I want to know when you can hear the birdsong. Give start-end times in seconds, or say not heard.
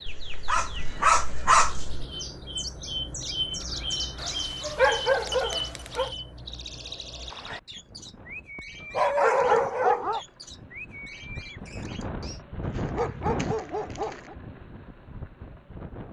0.0-12.4.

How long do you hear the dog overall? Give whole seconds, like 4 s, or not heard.
7 s.